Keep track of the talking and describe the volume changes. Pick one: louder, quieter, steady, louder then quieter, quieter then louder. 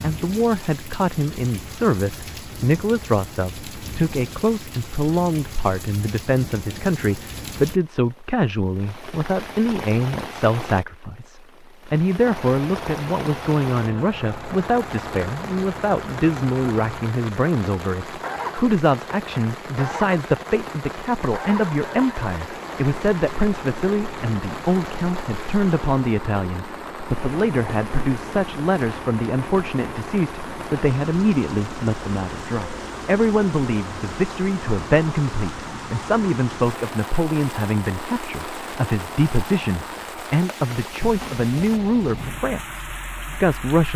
steady.